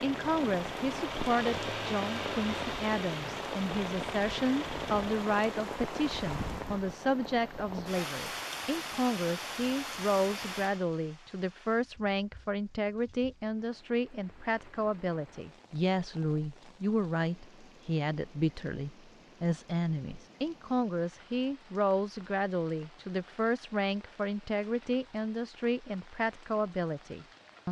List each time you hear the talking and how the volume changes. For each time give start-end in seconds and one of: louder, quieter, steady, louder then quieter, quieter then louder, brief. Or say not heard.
0.0-27.6 steady.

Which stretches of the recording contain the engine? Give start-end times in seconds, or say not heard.
0.0-5.5.